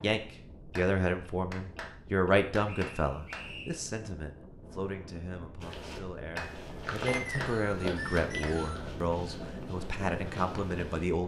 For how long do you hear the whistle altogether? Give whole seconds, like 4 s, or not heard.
3 s.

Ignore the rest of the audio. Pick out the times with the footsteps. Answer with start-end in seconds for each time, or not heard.
5.6-11.1.